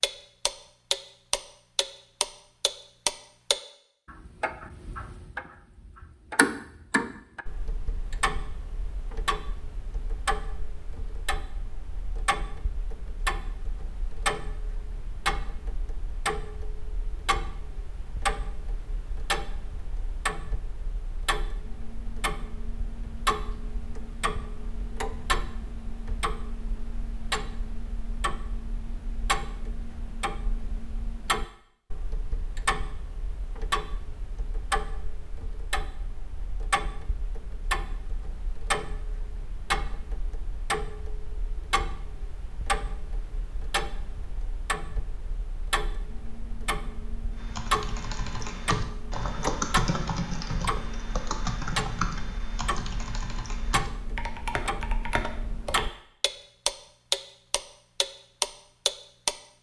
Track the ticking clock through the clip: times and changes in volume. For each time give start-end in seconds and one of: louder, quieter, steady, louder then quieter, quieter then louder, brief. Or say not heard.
0.0-59.4 steady.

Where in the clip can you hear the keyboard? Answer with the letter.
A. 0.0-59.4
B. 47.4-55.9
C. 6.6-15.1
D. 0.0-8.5
B.